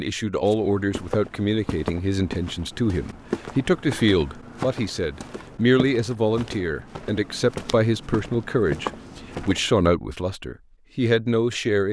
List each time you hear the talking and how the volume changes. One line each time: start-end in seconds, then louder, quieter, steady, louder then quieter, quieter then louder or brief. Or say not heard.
0.0-11.8 steady.